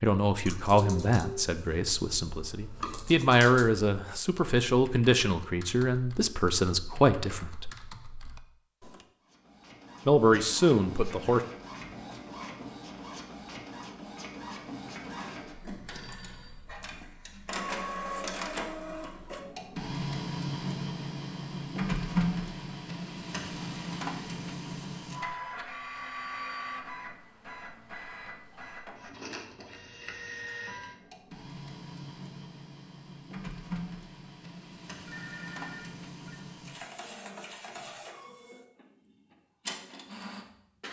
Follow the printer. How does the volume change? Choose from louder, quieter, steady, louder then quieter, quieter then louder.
louder then quieter.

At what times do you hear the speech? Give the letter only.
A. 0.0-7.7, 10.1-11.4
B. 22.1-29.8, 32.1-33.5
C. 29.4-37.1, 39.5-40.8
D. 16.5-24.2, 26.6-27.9
A.